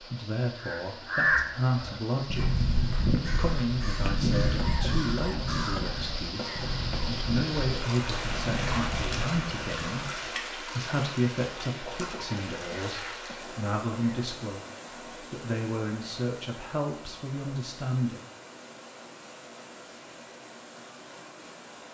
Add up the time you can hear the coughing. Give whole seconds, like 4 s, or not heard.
5 s.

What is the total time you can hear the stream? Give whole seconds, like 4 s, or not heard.
22 s.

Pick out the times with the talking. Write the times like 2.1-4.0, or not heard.
0.0-18.2.